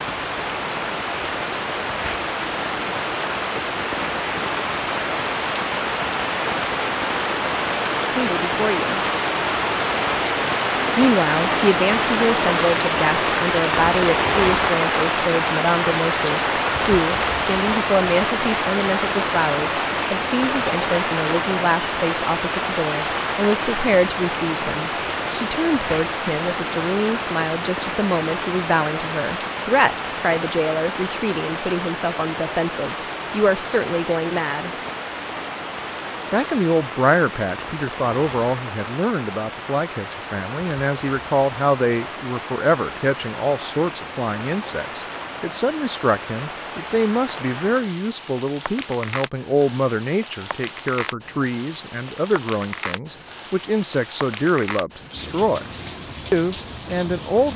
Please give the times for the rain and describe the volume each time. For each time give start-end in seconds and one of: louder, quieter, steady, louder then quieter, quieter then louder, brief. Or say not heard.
0.0-57.5 quieter.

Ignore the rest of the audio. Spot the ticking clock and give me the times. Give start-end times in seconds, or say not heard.
not heard.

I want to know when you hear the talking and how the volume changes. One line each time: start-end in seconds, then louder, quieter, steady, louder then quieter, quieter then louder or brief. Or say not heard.
8.1-9.0 brief
10.9-34.7 steady
36.3-55.7 steady
56.3-57.5 brief.